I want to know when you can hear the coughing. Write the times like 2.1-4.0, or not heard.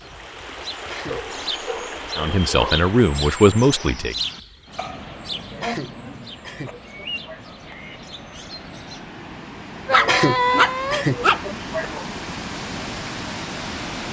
0.8-1.3, 5.5-7.5, 9.9-12.1.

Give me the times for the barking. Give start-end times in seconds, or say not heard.
1.1-2.8, 4.8-6.8, 9.8-11.8.